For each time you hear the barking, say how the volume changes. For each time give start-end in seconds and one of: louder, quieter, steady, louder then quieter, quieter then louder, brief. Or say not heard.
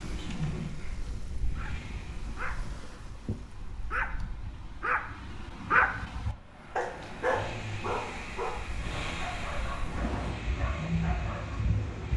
1.6-11.7 louder then quieter.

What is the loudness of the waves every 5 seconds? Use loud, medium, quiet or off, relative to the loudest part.
medium, medium, loud.